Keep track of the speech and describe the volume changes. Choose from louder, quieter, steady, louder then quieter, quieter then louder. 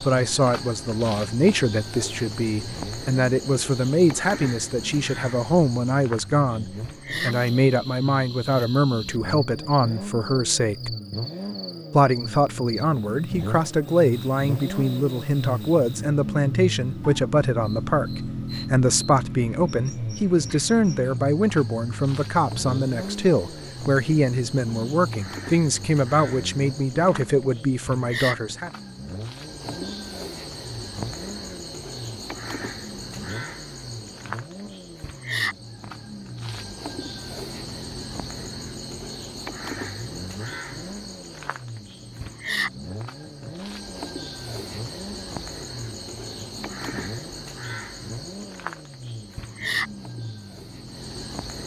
steady.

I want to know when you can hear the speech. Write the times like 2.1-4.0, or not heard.
0.0-10.9, 11.9-28.7.